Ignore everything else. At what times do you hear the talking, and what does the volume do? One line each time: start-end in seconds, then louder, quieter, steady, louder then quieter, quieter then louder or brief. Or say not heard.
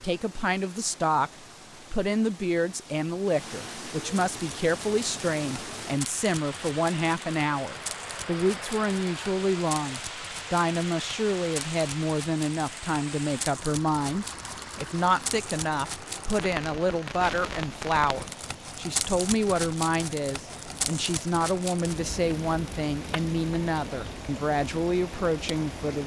0.0-1.3 brief
1.9-26.0 steady.